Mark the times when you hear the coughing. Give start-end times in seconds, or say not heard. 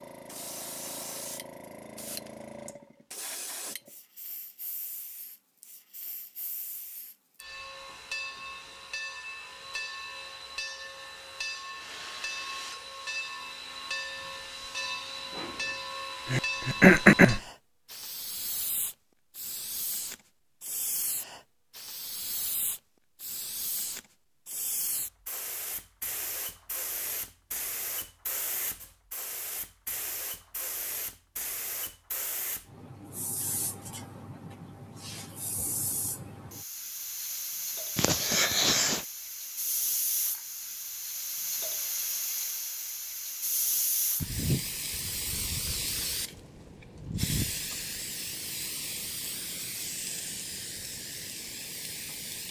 16.2-17.4, 38.0-39.0.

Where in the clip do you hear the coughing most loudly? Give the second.
17 s.